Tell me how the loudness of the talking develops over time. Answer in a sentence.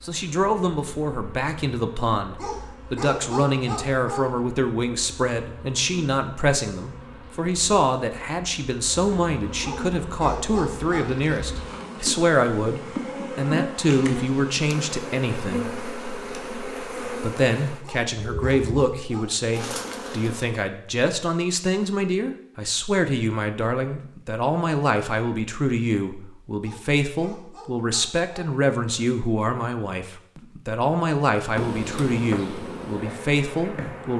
The loudness of the talking stays about the same.